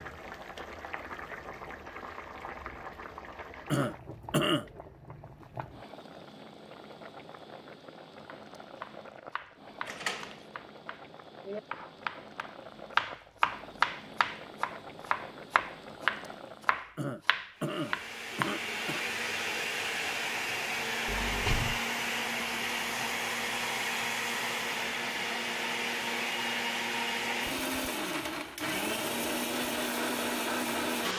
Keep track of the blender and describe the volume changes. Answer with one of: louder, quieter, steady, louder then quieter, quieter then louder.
steady.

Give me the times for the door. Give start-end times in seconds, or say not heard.
9.8-10.4, 21.1-21.8.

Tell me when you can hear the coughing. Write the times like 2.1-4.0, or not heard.
3.7-4.7, 16.9-19.1.